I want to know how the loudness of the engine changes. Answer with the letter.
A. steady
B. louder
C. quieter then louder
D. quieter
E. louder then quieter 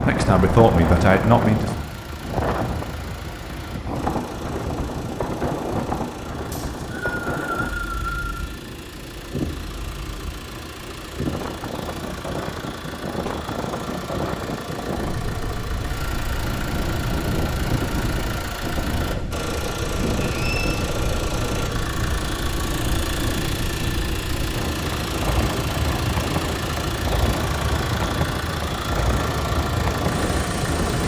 B.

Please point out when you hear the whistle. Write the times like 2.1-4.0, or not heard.
6.5-8.4, 20.2-20.8.